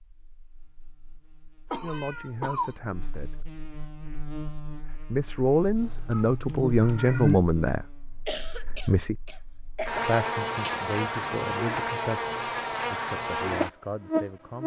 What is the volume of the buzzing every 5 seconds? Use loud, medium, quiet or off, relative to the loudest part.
quiet, medium, loud.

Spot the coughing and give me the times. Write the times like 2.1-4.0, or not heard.
1.7-2.8, 8.2-10.0.